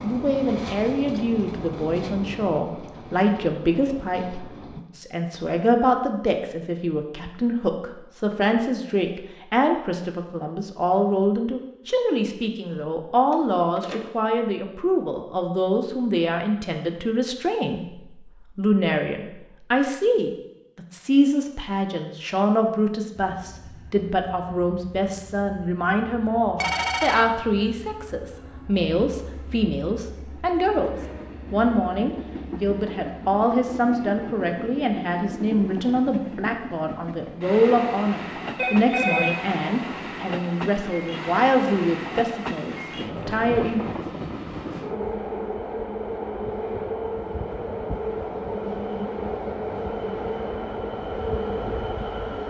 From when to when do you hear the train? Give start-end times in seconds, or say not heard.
0.0-4.8, 23.1-52.4.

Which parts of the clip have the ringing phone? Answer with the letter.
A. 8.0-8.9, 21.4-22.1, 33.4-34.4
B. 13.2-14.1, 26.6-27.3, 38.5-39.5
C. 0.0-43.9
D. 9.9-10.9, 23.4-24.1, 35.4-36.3
B.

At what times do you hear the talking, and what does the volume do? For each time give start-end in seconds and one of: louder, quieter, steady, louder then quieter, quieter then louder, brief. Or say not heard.
0.0-43.9 steady.